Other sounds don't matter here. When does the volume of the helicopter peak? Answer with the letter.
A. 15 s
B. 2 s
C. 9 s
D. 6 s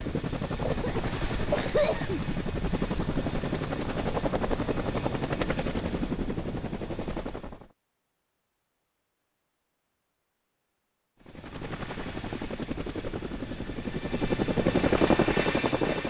A.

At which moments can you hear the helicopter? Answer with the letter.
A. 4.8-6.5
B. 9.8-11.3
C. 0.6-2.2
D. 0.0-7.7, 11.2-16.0
D.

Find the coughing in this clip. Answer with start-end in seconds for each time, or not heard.
0.6-2.2.